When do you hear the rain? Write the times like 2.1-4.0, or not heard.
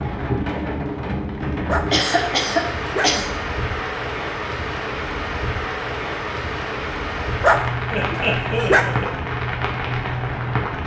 0.0-10.8.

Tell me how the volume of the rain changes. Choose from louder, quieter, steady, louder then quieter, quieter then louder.
steady.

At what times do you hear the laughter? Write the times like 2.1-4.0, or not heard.
1.9-3.4, 7.9-9.2.